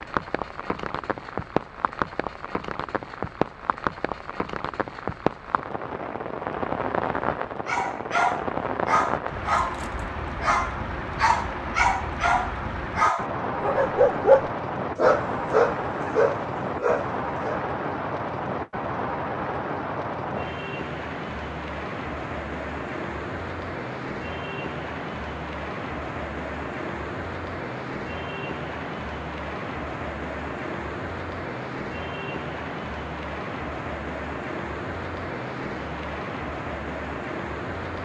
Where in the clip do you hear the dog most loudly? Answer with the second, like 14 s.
14 s.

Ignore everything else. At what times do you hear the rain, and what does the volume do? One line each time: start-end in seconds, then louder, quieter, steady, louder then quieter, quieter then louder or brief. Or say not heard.
0.0-38.0 steady.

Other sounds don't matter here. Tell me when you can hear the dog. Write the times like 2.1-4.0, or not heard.
7.7-17.6.